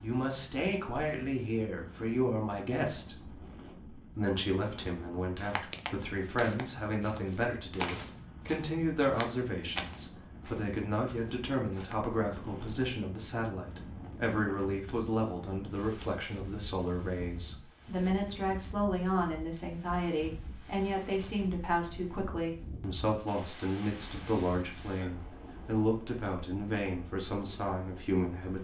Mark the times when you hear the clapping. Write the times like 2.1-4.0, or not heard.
not heard.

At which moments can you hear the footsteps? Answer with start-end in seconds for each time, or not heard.
5.3-11.9.